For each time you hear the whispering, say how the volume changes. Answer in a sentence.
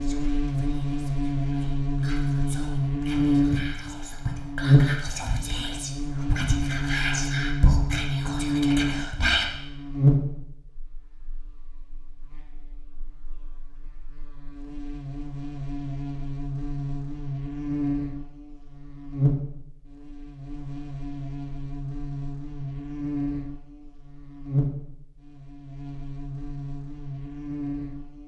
You can hear the whispering from 0.0 to 9.4 s, getting louder.